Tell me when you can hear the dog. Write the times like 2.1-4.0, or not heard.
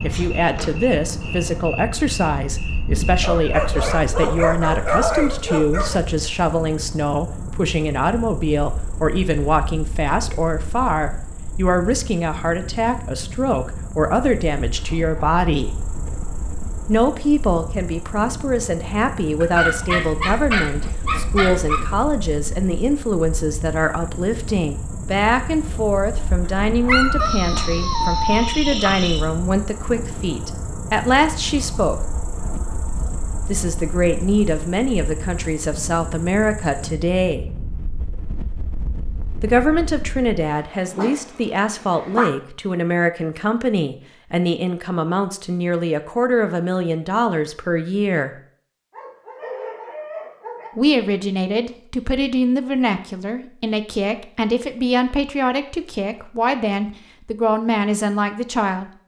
3.2-6.0, 19.4-21.9, 26.9-28.8, 40.4-42.3, 48.9-50.7.